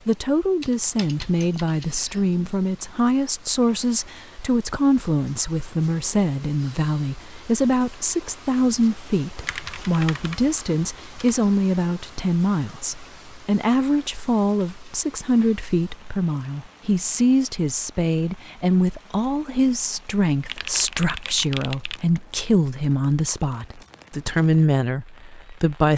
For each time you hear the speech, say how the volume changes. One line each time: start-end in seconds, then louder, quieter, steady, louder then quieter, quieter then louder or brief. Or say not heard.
0.1-25.9 steady.